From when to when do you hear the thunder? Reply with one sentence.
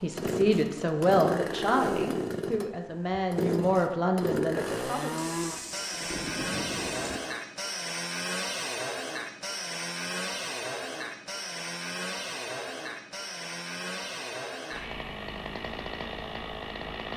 The thunder can be heard from 5.2 to 7.2 s.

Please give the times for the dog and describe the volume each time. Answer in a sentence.
The dog can't be heard in this clip.